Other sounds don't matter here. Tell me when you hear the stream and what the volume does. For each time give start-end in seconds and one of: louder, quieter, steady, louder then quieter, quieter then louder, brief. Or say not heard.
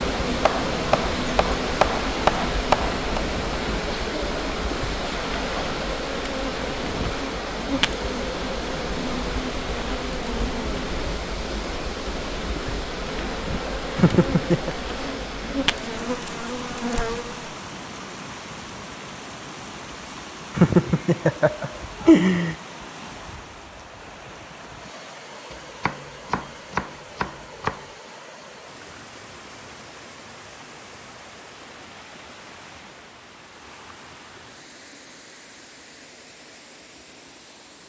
0.0-37.8 quieter.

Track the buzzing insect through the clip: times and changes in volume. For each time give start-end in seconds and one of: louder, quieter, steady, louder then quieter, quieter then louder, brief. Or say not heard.
0.0-17.6 steady.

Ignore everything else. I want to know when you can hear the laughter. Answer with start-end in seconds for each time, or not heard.
13.9-14.8, 20.6-22.6.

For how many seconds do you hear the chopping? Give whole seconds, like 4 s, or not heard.
5 s.